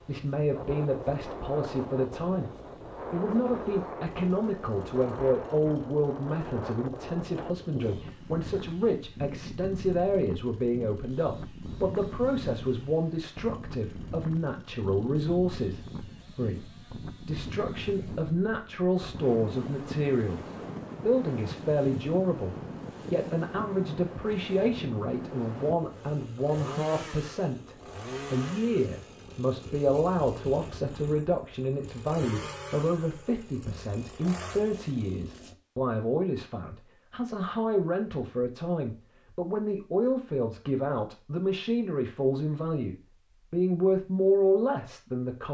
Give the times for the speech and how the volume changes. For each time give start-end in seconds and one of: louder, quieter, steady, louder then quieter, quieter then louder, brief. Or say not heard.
0.0-45.4 steady.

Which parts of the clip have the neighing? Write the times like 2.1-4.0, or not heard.
not heard.